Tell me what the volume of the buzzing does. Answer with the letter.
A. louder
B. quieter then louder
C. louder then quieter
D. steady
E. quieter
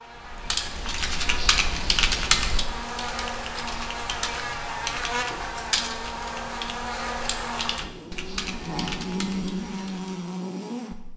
A.